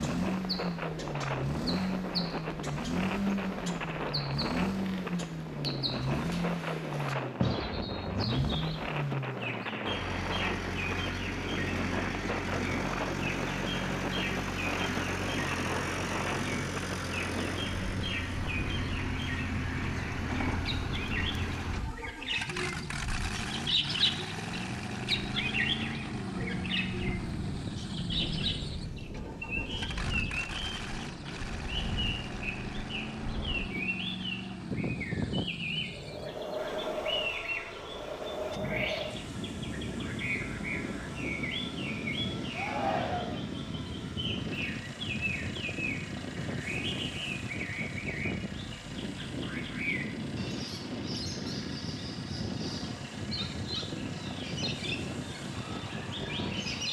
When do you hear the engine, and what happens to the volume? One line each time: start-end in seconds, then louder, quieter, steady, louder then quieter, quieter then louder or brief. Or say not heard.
0.0-56.8 quieter.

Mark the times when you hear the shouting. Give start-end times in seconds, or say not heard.
42.5-43.5.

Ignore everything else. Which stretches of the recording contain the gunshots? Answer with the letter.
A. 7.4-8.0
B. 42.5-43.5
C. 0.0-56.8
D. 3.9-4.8
A.